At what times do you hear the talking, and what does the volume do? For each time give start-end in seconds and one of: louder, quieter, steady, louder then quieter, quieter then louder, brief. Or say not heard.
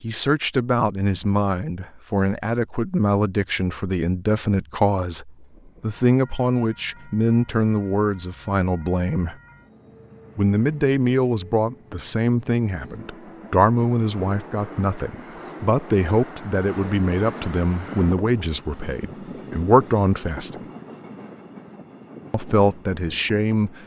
0.0-9.3 steady
10.3-20.6 steady
22.3-23.8 brief.